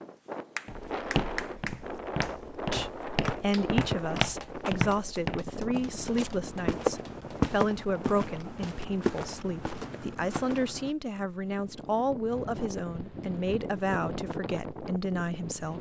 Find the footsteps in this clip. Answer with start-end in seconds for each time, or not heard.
0.7-10.9.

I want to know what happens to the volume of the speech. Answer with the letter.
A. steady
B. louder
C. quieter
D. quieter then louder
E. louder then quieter
A.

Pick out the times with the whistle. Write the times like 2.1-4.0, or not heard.
3.2-4.0.